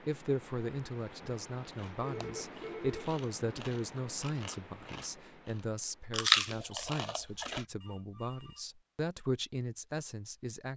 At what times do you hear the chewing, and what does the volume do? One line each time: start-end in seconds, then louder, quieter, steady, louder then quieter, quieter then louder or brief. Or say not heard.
1.7-7.7 louder.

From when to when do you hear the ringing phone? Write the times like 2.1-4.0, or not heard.
2.0-3.1, 7.8-8.7.